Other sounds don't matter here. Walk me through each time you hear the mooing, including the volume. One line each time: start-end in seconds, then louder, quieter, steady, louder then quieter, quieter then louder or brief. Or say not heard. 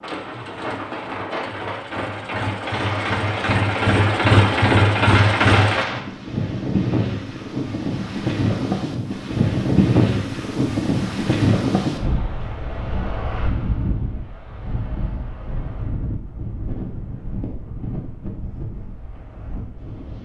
not heard.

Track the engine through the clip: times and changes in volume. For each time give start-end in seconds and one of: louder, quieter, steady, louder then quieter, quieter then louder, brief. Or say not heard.
0.0-5.8 louder.